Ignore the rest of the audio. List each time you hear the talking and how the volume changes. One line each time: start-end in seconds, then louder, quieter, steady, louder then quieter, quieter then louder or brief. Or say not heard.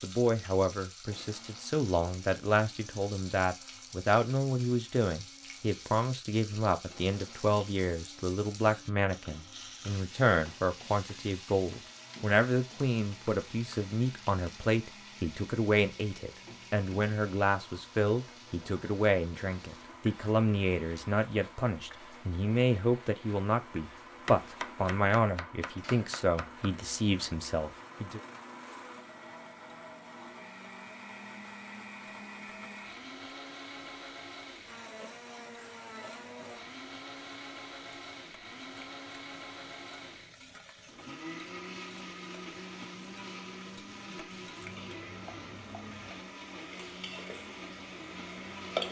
0.0-28.2 steady.